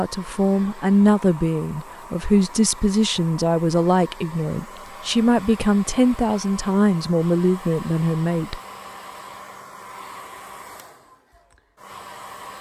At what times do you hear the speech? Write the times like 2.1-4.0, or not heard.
0.0-8.6.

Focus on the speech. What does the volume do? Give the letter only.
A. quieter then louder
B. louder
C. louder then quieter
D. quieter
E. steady
E.